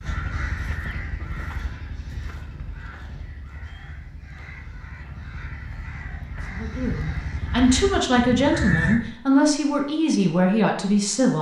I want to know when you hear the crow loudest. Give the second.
9 s.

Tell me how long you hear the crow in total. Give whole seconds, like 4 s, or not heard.
9 s.